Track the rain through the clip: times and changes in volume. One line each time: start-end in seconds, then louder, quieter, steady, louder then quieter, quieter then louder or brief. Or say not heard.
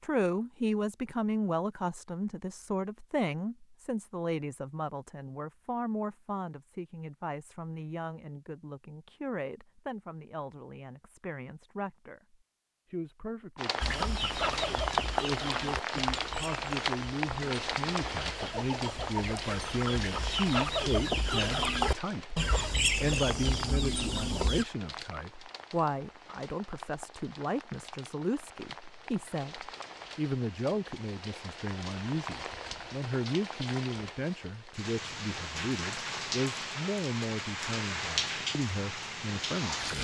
13.6-40.0 quieter then louder.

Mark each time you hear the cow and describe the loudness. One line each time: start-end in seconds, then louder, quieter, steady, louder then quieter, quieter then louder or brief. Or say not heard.
not heard.